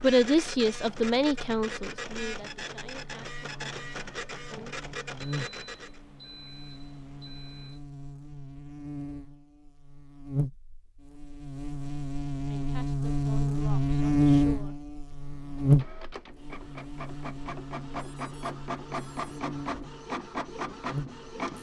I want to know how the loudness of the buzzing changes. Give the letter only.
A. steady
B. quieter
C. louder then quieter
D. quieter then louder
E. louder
C.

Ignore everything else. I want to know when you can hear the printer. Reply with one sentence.
The printer can be heard from 0.0 to 6.0 s and from 15.1 to 21.5 s.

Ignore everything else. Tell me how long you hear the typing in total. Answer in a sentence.
The typing can't be heard in this clip.